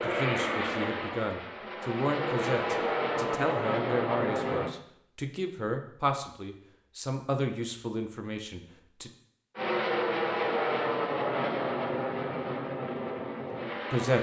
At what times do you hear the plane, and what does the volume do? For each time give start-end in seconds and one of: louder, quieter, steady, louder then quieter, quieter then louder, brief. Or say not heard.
0.0-4.8 quieter then louder
9.6-14.1 quieter.